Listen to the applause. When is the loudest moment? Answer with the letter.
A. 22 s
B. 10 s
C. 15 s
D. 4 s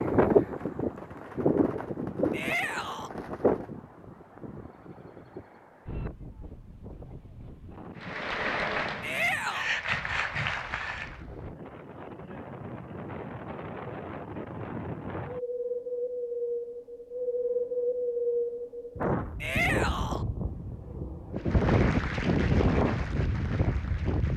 B.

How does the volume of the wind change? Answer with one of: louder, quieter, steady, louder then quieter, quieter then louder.
quieter then louder.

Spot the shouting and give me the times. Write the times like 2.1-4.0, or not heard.
2.3-3.1, 9.0-9.7, 19.4-20.2.